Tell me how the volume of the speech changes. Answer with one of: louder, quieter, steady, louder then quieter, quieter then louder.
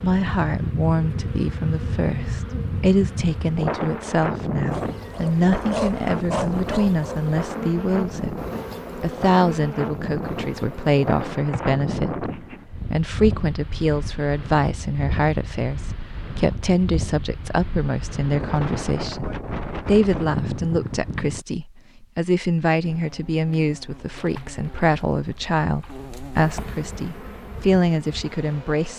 steady.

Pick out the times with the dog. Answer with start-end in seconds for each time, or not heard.
4.7-7.2.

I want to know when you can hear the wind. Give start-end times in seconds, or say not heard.
0.0-21.4.